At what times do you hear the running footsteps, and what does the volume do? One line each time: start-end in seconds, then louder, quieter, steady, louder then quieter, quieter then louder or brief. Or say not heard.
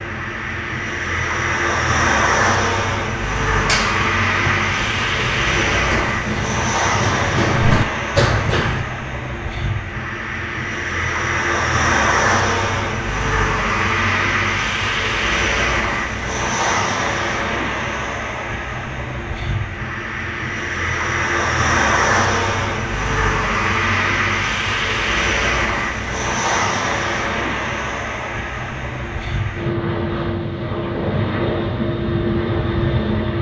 3.5-8.8 louder.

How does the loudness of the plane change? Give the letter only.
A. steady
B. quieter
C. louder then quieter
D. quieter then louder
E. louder
A.